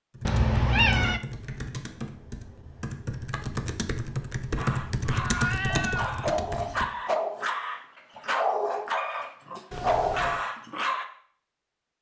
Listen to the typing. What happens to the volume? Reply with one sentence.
The volume of the typing goes up.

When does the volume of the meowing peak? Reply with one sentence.
The loudest moment of the meowing is at 1 second.